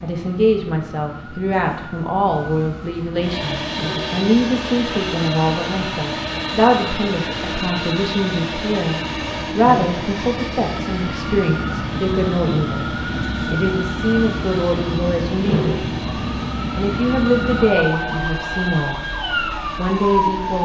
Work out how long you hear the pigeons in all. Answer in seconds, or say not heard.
not heard.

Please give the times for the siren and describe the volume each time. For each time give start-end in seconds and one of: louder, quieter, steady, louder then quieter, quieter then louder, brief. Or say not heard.
0.0-20.6 louder.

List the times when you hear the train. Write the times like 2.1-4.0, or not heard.
3.1-20.6.